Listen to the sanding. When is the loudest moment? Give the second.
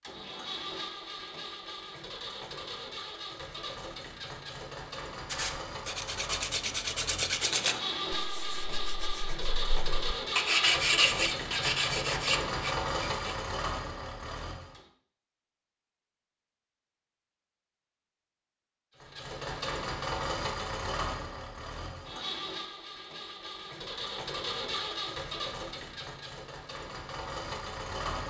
11 s.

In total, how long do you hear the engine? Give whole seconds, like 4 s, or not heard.
24 s.